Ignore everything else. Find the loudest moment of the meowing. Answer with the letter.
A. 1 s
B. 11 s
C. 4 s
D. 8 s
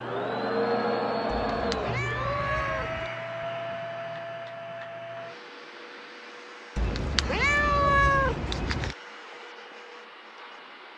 D.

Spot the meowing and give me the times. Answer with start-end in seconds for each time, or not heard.
1.3-3.1, 6.8-8.9.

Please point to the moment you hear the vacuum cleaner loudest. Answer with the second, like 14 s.
1 s.